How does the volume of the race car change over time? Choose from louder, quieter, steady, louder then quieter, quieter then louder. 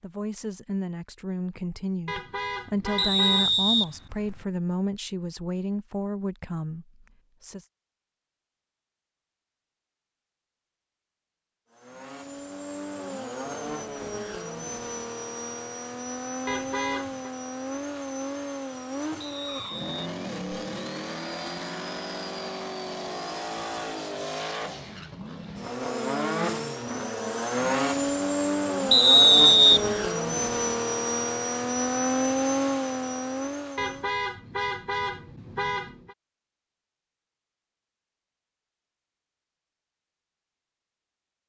louder.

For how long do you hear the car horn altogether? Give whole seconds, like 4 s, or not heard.
5 s.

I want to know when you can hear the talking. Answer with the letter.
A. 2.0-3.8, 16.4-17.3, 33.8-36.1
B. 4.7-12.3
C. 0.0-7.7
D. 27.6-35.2
C.